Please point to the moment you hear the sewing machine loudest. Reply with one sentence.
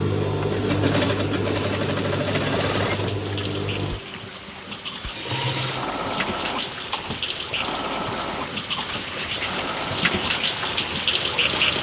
The loudest moment of the sewing machine is at 1 second.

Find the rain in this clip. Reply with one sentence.
The rain can be heard from 0.0 to 11.7 s.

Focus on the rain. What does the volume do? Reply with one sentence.
The volume of the rain goes up.